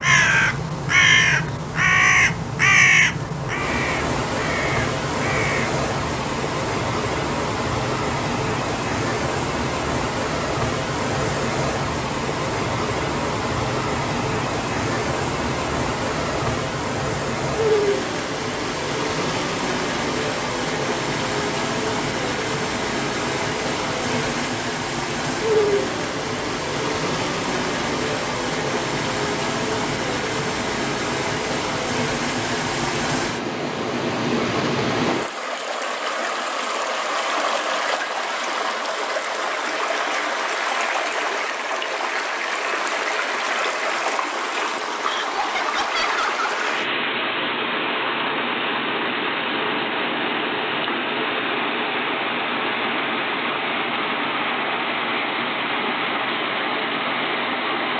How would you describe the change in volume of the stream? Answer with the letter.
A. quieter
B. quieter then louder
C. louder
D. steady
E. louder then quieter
D.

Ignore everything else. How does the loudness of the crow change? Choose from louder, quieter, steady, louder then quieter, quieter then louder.
quieter.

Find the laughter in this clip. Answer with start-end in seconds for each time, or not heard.
45.0-46.5.